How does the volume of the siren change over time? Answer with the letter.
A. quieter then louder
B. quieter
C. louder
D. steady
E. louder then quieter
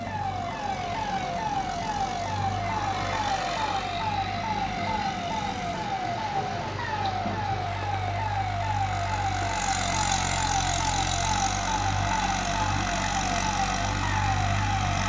D.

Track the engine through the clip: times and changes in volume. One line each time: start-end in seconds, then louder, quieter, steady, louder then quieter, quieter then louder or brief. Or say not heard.
0.0-15.0 louder.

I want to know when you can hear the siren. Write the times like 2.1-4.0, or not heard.
0.0-15.0.